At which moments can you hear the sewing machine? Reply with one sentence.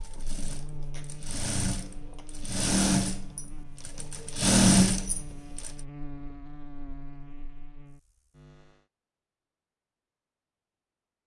The sewing machine can be heard from 0.0 to 5.7 s.